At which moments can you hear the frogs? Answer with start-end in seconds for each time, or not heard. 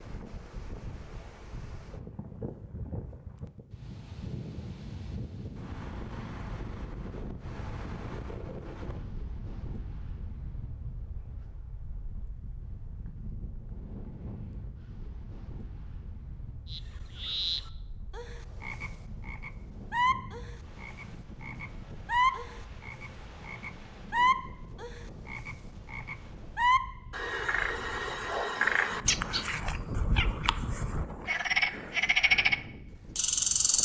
16.6-33.8.